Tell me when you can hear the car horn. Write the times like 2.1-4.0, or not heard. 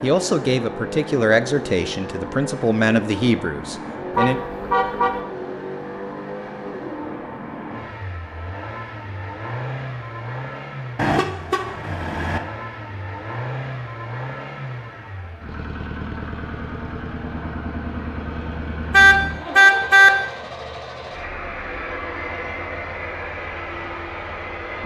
4.2-5.2, 10.9-12.4, 18.9-20.1.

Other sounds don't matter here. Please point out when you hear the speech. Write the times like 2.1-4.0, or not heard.
0.0-4.4.